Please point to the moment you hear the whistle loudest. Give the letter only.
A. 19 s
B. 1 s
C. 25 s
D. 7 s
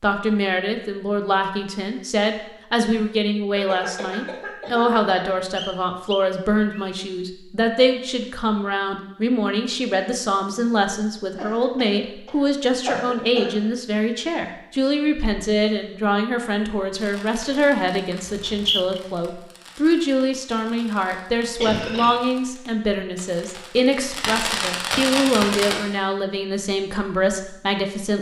A.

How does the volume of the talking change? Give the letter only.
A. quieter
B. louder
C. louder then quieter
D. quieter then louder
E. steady
E.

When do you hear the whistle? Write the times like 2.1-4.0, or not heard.
5.5-7.0, 18.2-19.0.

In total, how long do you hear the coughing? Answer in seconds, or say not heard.
5 s.